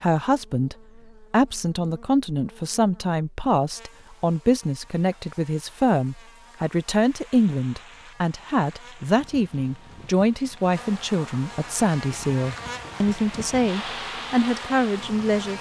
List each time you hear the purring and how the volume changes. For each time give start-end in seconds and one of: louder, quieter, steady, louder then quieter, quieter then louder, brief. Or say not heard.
not heard.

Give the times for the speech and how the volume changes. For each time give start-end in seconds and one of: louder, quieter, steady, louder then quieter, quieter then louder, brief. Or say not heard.
0.0-15.5 steady.